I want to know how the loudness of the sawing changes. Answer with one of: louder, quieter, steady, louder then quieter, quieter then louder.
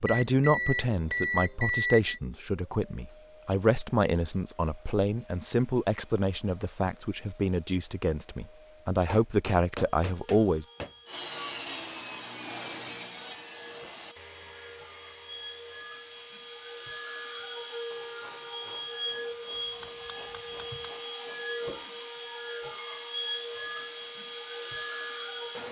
quieter.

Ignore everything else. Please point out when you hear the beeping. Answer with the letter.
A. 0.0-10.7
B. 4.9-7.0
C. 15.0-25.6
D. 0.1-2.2
D.